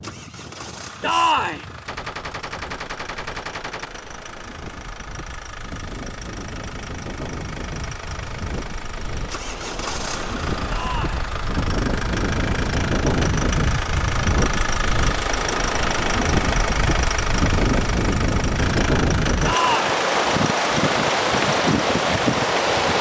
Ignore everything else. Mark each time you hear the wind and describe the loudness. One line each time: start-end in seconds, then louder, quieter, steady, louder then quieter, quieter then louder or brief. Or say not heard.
0.0-22.9 louder.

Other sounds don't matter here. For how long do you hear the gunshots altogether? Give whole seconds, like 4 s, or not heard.
2 s.